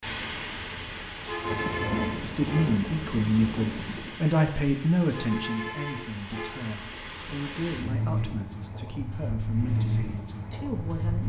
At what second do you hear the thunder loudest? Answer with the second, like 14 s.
2 s.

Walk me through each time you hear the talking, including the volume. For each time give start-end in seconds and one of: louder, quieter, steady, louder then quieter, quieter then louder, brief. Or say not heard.
2.2-11.2 quieter.